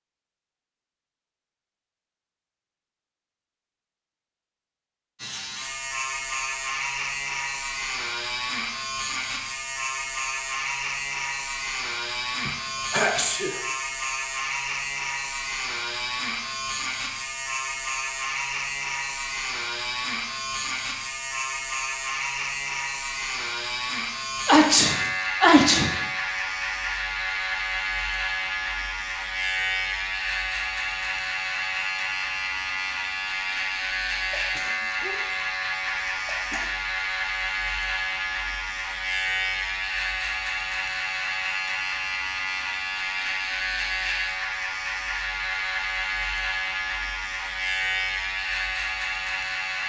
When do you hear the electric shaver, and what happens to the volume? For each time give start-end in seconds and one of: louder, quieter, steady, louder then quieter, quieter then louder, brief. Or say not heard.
5.2-49.8 steady.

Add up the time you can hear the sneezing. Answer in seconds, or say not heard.
5 s.